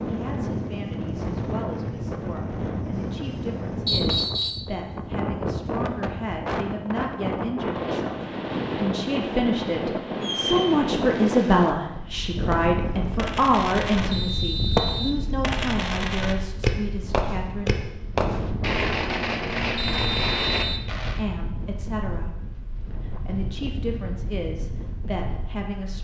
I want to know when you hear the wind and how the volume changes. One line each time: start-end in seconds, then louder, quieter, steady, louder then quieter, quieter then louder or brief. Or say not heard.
0.0-25.9 quieter.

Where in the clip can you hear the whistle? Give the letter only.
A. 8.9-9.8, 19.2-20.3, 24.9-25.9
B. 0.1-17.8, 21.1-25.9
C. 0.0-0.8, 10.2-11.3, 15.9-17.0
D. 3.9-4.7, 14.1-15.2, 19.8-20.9
D.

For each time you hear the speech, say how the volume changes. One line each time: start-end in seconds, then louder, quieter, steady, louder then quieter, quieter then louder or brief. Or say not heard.
0.1-17.8 louder then quieter
21.1-25.9 quieter then louder.